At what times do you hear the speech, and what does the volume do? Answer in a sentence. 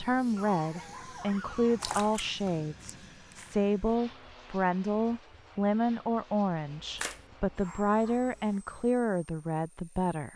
The speech can be heard from 0.0 to 10.3 s, at a steady volume.